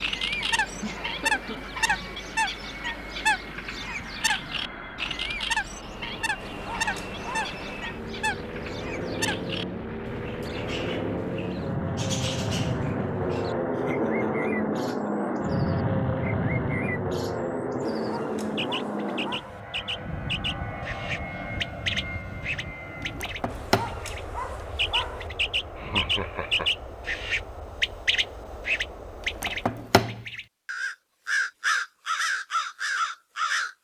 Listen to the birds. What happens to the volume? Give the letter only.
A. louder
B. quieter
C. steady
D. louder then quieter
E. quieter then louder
E.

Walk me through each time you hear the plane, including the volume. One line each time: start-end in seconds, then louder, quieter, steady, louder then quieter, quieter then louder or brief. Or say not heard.
0.0-30.1 louder then quieter.